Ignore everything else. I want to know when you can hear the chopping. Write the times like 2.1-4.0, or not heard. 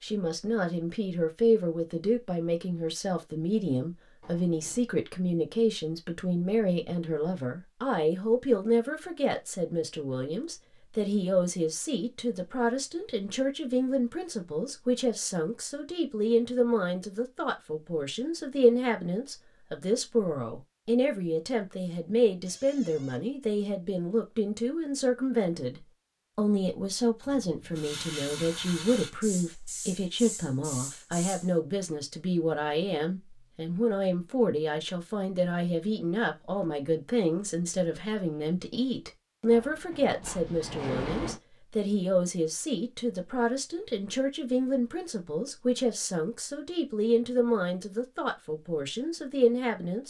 not heard.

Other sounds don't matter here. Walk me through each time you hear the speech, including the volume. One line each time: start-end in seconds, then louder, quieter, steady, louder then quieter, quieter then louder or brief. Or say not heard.
0.0-50.0 steady.